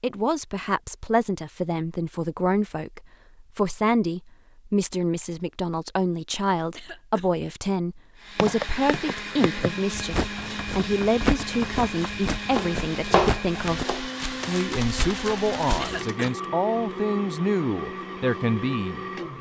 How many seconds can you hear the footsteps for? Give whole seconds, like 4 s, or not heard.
8 s.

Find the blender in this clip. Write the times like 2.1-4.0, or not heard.
8.2-19.3.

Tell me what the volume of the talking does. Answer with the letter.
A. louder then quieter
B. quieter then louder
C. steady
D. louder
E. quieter
C.